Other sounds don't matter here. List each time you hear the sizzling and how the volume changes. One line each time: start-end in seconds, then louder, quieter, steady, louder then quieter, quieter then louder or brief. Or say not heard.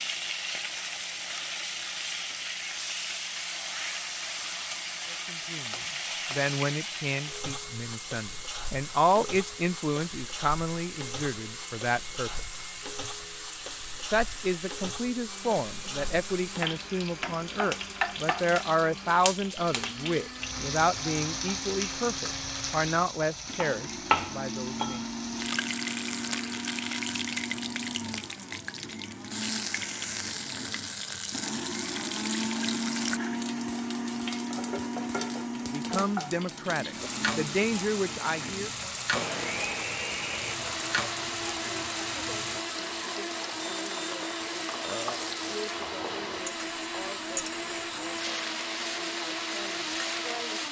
0.0-50.6 steady.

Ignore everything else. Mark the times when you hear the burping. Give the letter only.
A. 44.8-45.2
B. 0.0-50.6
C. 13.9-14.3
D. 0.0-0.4
A.